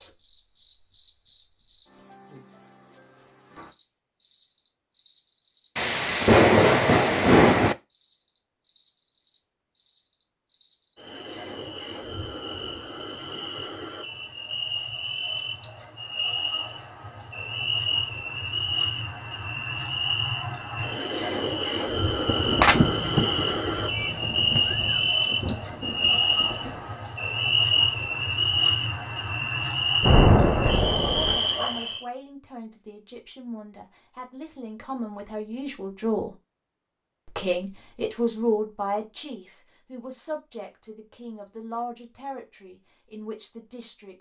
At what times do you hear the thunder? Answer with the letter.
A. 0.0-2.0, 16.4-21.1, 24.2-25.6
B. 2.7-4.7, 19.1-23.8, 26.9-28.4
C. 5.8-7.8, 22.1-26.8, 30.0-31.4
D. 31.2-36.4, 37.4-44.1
C.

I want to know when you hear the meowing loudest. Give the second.
23 s.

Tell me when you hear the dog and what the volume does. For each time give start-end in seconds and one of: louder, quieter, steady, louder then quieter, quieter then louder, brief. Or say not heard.
not heard.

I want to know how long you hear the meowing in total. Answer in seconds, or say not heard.
3 s.